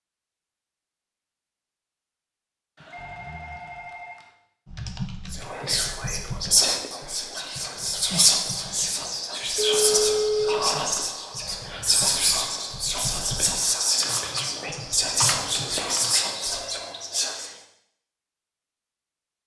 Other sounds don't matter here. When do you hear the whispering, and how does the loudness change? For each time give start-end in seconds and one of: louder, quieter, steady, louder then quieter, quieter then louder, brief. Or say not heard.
5.3-17.5 steady.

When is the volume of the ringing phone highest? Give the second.
10 s.